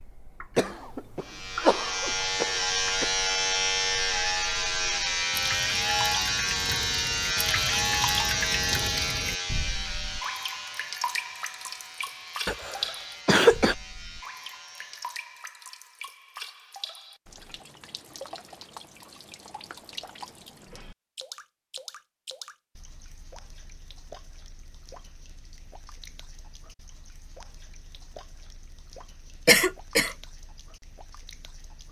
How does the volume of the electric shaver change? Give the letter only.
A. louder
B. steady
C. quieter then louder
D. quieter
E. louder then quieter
D.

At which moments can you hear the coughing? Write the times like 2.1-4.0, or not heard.
0.6-3.0, 12.4-13.8, 29.4-30.1.